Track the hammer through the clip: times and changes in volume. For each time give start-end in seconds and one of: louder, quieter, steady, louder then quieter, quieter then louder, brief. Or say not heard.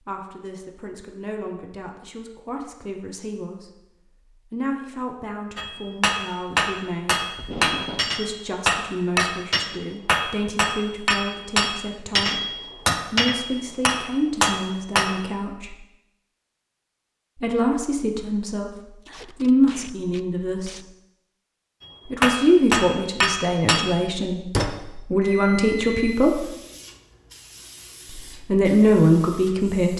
5.5-15.2 steady
22.2-24.6 brief.